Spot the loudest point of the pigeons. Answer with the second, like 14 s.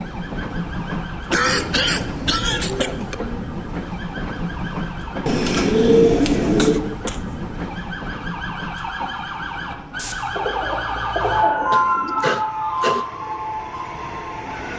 6 s.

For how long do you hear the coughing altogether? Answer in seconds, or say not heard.
4 s.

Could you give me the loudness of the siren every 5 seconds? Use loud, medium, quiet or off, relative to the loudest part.
quiet, medium, loud.